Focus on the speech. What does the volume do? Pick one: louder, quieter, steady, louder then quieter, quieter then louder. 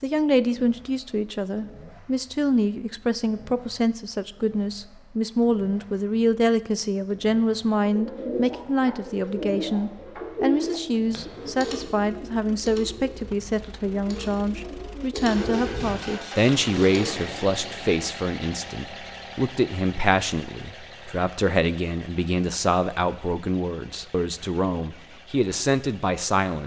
steady.